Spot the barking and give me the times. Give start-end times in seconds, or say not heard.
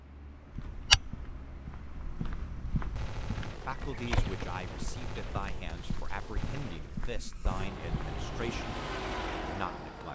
not heard.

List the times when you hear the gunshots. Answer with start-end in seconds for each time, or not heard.
3.0-7.2.